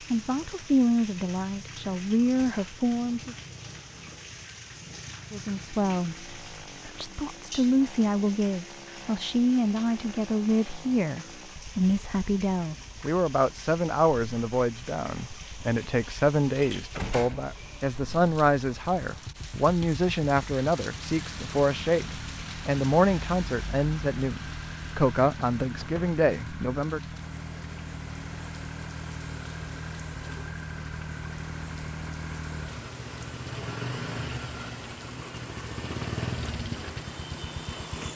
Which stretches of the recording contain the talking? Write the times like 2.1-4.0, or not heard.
0.1-3.4, 5.3-27.0.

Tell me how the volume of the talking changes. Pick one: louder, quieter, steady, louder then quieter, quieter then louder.
steady.